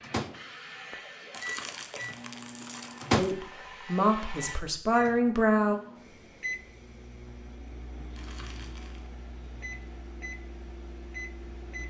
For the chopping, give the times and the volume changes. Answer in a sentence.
The chopping can't be heard in this clip.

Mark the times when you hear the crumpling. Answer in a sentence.
The crumpling can be heard from 1.3 to 3.2 s and from 8.2 to 9.1 s.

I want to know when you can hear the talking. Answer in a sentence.
You can hear the talking from 3.1 to 5.8 s.